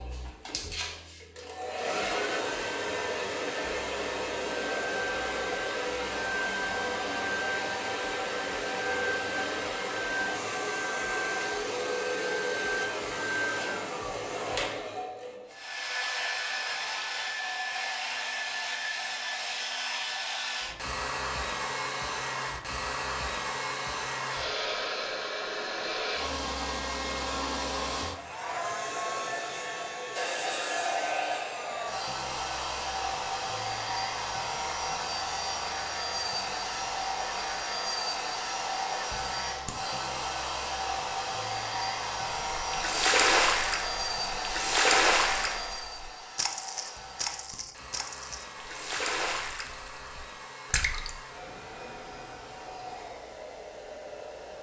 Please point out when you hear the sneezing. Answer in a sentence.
You can't hear the sneezing here.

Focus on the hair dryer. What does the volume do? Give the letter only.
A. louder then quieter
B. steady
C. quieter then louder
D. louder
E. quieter
E.